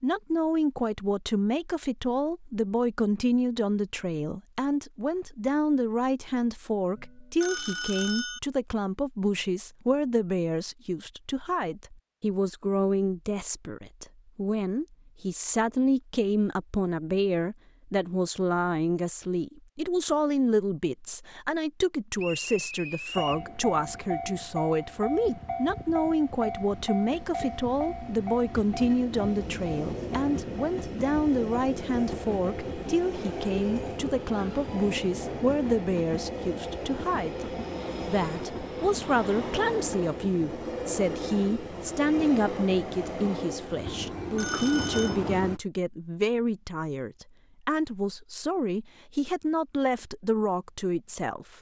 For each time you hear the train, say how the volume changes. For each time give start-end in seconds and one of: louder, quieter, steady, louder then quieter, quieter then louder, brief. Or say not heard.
23.1-45.6 steady.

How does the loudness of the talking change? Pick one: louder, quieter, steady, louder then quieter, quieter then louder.
steady.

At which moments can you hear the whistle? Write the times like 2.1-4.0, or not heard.
22.1-23.4.